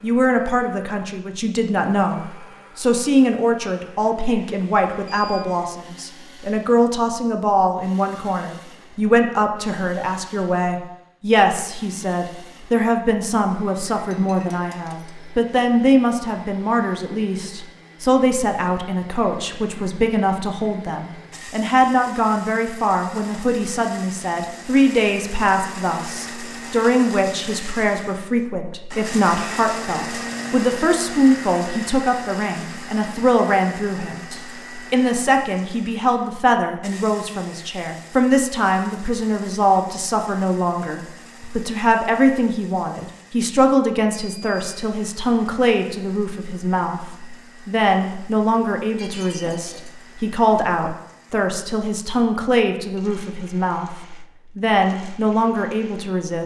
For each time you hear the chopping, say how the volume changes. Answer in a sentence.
The chopping can't be heard in this clip.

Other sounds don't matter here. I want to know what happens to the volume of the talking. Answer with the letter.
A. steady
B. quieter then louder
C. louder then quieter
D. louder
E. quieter
A.